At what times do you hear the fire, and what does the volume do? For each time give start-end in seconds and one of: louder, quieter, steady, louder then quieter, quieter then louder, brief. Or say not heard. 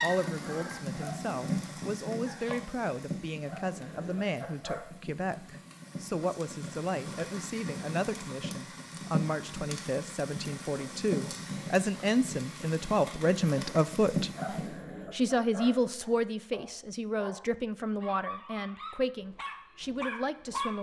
0.0-14.8 quieter then louder.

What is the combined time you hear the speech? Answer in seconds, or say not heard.
21 s.